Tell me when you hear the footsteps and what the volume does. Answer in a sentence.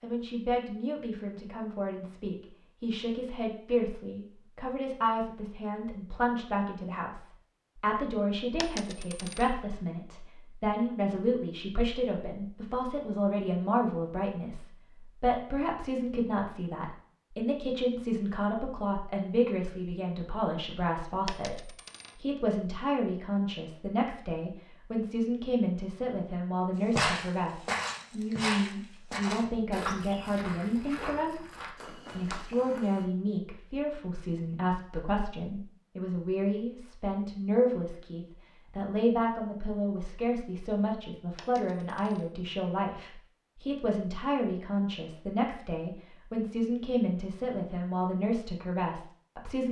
The footsteps can be heard from 26.9 to 33.0 s, getting quieter.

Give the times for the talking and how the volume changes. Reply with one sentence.
You can hear the talking from 0.0 to 49.6 s, at a steady volume.